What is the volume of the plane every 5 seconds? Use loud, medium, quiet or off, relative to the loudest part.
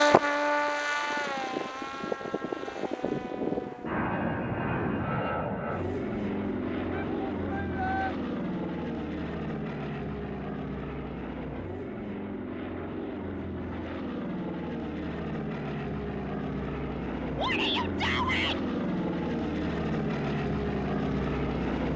loud, loud, medium, loud, loud.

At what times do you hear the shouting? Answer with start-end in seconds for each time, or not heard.
6.9-8.2, 17.4-18.6.